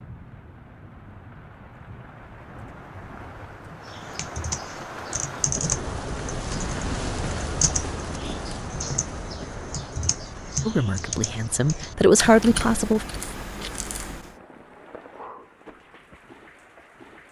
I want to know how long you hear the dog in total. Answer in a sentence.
The dog can't be heard in this clip.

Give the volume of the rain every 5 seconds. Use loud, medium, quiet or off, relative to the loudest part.
medium, loud, medium, quiet.